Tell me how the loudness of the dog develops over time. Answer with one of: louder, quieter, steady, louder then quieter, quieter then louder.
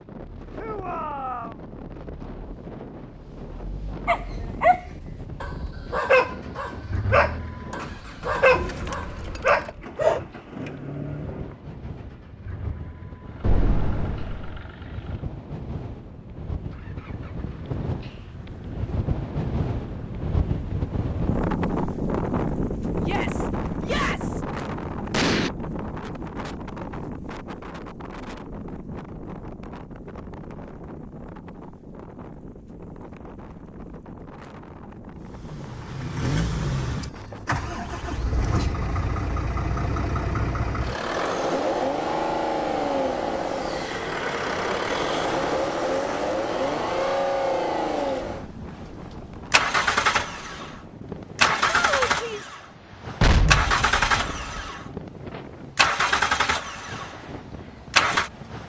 steady.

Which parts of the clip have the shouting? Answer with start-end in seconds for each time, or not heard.
0.6-1.6, 23.0-24.4, 51.6-52.5.